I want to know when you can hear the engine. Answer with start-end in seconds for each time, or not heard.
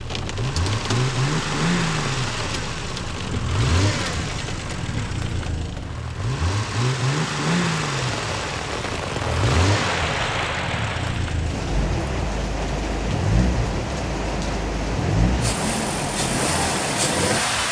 0.0-17.6.